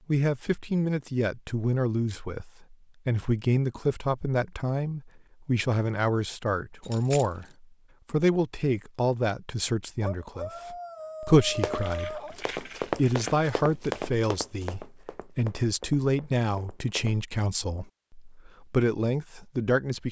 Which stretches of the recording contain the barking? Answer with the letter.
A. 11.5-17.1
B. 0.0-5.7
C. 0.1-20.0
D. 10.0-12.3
D.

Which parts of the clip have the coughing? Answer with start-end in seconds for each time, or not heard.
not heard.